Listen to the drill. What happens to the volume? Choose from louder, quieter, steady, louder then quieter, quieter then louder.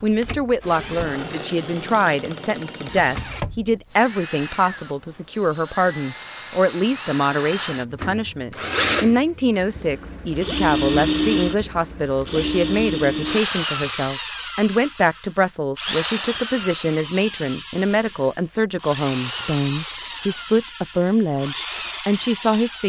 louder then quieter.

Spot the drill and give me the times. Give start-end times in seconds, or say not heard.
0.0-22.8.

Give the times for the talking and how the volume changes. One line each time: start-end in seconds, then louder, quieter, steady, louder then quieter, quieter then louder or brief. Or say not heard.
0.0-22.8 steady.